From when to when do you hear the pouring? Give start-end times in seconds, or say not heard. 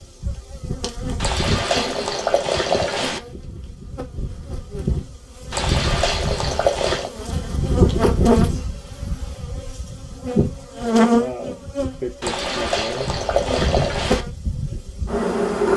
1.2-3.2, 5.5-7.1, 12.2-14.2.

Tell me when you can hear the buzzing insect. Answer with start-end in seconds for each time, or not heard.
0.0-15.7.